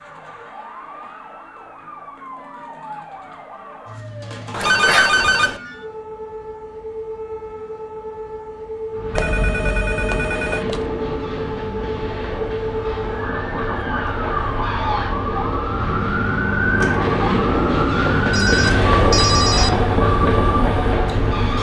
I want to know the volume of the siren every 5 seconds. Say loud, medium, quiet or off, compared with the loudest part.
quiet, medium, loud, loud, loud.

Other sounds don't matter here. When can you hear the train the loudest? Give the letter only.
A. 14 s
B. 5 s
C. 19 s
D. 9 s
C.